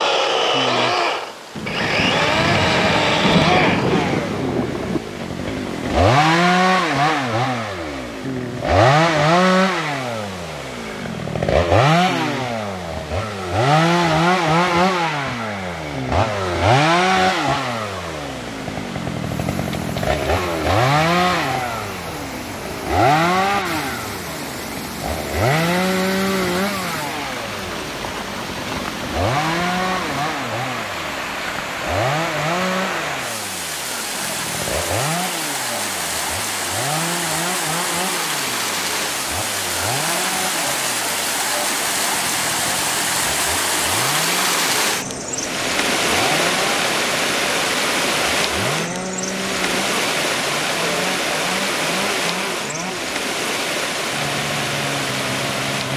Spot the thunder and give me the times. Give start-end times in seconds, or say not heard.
1.6-5.0.